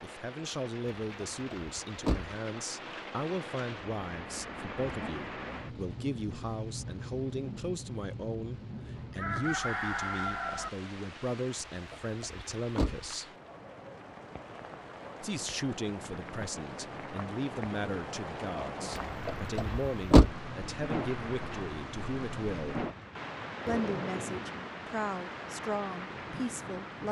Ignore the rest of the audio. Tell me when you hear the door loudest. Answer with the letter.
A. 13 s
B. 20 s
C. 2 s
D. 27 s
B.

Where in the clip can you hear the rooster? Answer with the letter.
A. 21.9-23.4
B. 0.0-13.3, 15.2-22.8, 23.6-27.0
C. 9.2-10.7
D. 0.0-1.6
C.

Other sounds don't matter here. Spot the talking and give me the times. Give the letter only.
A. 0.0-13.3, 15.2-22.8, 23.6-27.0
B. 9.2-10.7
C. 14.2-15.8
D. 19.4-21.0
A.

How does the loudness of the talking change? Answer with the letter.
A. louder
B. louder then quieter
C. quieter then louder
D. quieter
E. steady
E.